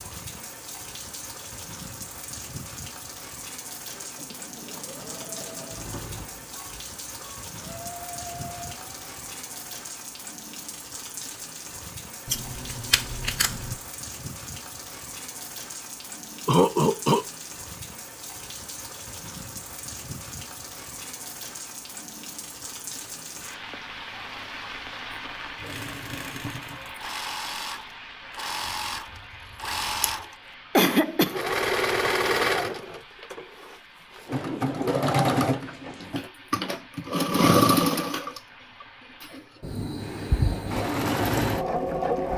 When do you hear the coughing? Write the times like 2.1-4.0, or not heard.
16.4-17.2, 30.8-31.4.